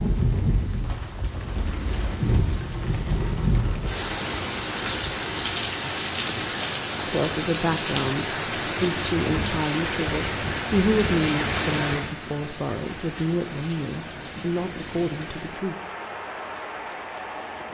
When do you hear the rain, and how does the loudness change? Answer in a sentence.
You can hear the rain from 0.0 to 17.6 s, getting quieter.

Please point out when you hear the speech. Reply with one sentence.
You can hear the speech from 7.0 to 15.8 s.